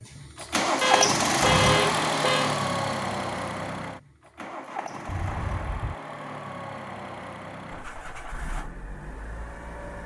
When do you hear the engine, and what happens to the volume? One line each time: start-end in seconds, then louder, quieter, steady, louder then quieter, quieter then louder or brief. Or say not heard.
0.0-10.0 quieter.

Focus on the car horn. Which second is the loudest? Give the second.
2 s.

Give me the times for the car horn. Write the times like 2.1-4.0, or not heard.
0.8-2.5, 5.0-6.0.